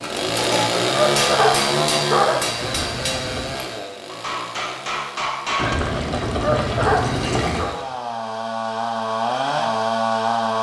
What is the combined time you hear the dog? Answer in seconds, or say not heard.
3 s.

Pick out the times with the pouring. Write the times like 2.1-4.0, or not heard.
2.6-3.6, 5.5-7.6.